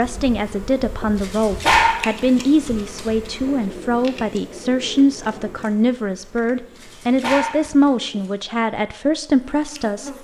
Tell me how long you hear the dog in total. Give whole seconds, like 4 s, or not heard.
2 s.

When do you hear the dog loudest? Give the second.
2 s.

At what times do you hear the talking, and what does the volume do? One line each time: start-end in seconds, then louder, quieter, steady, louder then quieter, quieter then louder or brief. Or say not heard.
0.0-10.1 steady.